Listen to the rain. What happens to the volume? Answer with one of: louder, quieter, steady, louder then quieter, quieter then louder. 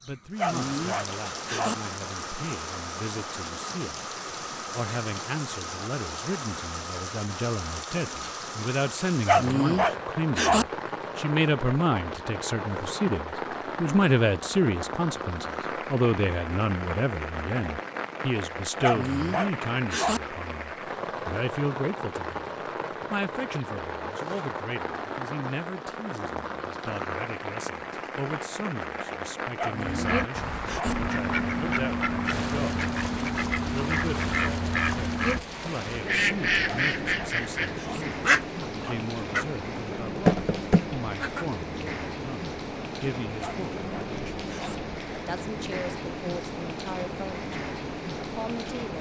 steady.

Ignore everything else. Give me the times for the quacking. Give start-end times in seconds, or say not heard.
29.8-41.5.